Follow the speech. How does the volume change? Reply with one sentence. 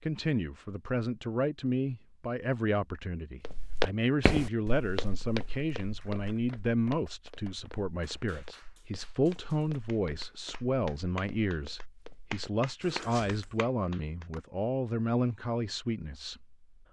The volume of the speech stays about the same.